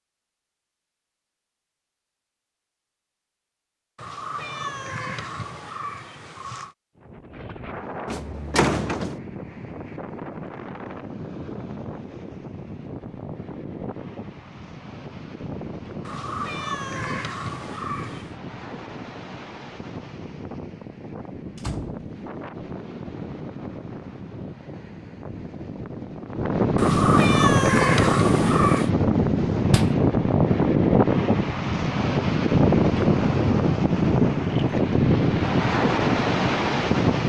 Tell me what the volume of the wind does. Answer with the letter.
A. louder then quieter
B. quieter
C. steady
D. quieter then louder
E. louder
E.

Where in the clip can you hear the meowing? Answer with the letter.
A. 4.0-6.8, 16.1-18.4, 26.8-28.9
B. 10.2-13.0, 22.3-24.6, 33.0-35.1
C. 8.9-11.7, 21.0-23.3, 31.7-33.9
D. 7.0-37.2
A.